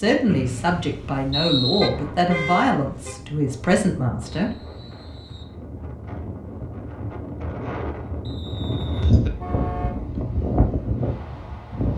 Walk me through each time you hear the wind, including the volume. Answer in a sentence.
The wind can be heard from 0.0 to 11.9 s, getting louder.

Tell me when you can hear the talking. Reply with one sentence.
The talking can be heard from 0.0 to 4.5 s.